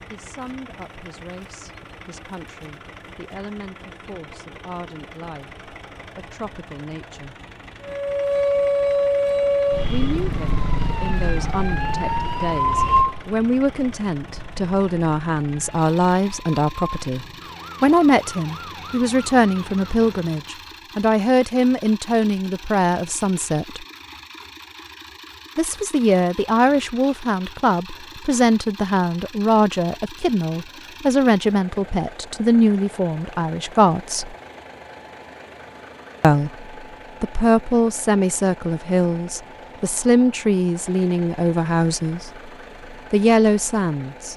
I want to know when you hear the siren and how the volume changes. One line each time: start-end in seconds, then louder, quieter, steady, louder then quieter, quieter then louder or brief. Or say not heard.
7.8-20.6 quieter.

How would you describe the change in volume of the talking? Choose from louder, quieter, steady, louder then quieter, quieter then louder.
louder.